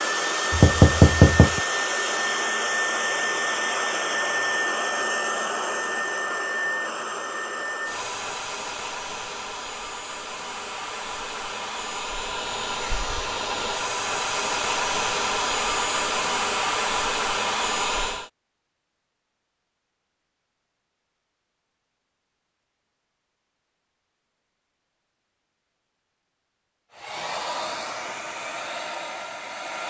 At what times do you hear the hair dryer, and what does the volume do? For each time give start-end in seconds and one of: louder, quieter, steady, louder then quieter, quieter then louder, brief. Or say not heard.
0.0-18.3 quieter then louder
26.9-29.8 brief.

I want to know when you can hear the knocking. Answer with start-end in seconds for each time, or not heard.
0.5-1.6.